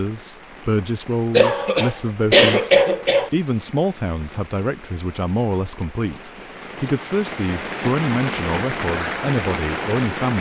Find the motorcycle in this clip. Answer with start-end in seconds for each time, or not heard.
not heard.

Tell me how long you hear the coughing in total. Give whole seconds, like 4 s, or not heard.
2 s.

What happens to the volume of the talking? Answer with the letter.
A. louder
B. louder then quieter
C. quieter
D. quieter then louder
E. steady
E.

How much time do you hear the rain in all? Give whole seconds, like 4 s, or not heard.
10 s.